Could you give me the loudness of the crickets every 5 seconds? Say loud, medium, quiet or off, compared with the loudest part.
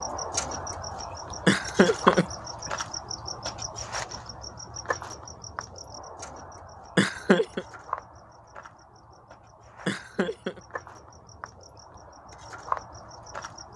loud, medium, medium.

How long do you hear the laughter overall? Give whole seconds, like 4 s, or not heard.
2 s.